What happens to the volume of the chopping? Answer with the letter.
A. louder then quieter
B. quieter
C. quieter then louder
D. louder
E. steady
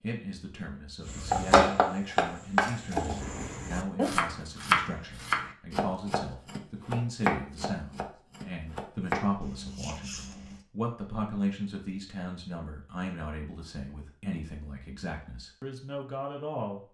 B.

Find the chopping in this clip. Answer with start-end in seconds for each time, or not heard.
1.0-10.6.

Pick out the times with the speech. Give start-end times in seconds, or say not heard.
0.0-16.8.